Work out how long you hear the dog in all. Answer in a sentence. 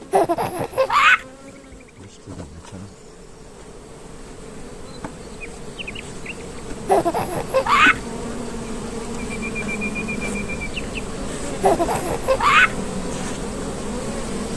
The dog can't be heard in this clip.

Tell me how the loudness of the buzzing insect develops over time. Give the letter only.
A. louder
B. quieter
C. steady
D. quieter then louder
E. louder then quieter
A.